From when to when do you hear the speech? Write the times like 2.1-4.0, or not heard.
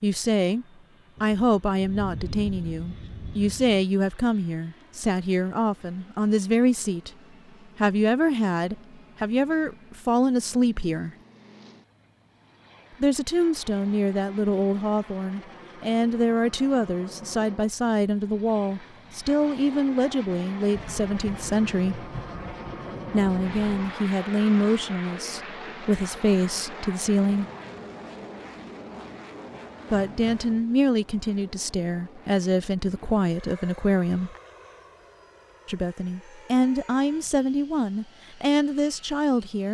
0.0-7.1, 7.8-11.1, 13.0-22.1, 23.1-27.5, 29.9-34.4, 35.6-39.7.